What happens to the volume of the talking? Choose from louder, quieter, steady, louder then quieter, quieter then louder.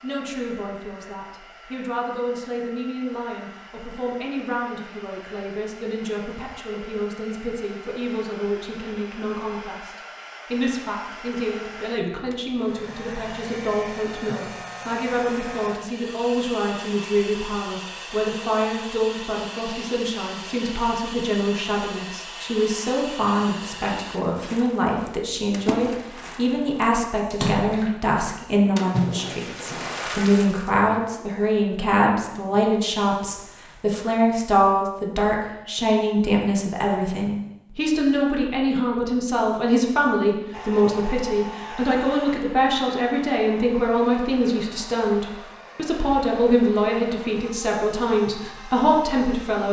louder.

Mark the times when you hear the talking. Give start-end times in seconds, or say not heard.
0.0-49.6.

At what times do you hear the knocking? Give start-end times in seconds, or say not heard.
not heard.